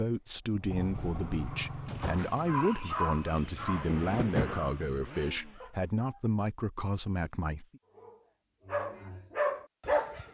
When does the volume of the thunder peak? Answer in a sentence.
The volume of the thunder peaks at 4 seconds.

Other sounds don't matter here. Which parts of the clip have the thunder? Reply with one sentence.
You can hear the thunder from 2.0 to 4.7 s.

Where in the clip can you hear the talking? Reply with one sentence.
You can hear the talking from 0.0 to 7.8 s.